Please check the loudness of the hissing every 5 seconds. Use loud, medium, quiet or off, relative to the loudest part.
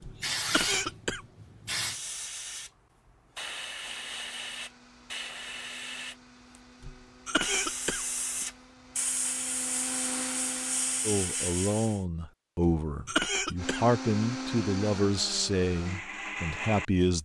loud, loud, loud, off.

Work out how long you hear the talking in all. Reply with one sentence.
The talking can be heard for 6 seconds in total.